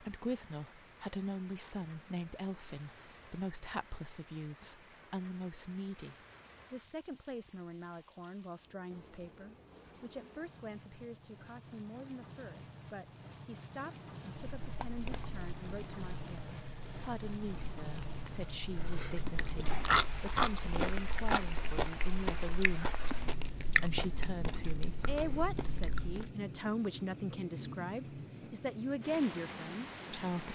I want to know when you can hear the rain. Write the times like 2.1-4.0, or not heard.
0.0-30.5.